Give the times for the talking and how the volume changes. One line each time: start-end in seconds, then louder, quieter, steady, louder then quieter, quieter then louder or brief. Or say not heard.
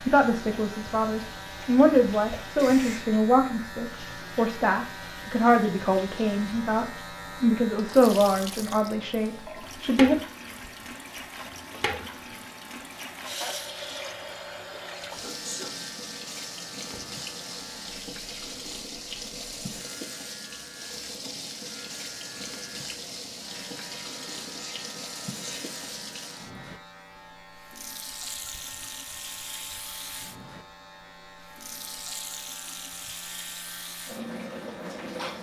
0.0-10.2 steady.